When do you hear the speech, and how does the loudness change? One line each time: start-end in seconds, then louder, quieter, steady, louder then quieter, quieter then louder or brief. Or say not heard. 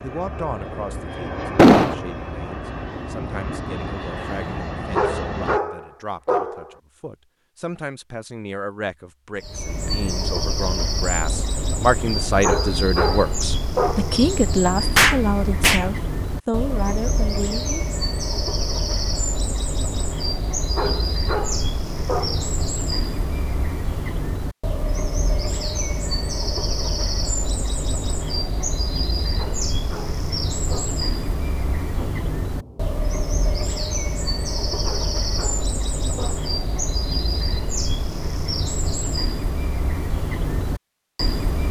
0.0-17.9 louder.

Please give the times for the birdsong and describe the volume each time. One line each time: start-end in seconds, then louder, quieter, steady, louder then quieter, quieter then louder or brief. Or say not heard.
9.3-41.6 steady.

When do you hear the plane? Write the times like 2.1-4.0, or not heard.
0.0-5.6.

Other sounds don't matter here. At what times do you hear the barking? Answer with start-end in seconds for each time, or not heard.
5.0-6.8, 12.4-14.2, 20.8-22.5, 29.4-30.9, 34.8-36.5.